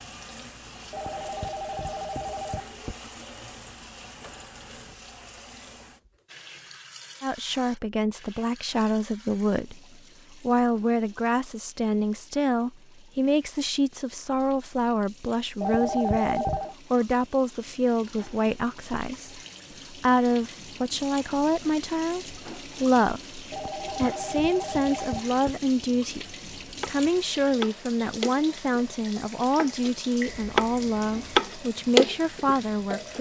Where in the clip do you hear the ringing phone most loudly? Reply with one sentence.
The loudest moment of the ringing phone is at 16 seconds.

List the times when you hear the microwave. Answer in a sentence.
You can't hear the microwave here.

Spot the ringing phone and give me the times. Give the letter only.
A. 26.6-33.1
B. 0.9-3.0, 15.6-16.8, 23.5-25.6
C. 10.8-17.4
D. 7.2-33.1
B.